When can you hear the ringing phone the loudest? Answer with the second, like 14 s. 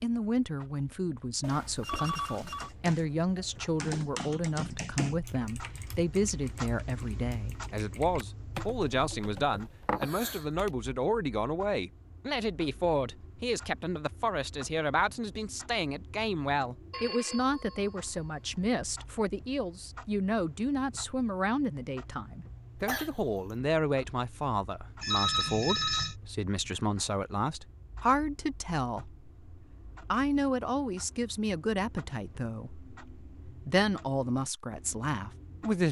25 s.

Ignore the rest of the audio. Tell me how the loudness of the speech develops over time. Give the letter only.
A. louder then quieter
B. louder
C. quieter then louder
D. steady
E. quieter
D.